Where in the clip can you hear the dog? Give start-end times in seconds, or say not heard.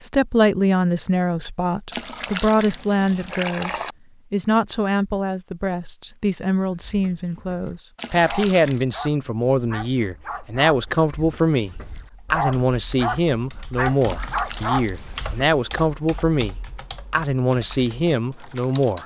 6.7-15.2.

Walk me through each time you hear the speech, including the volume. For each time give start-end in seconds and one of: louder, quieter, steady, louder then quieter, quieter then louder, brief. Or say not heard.
0.0-19.0 steady.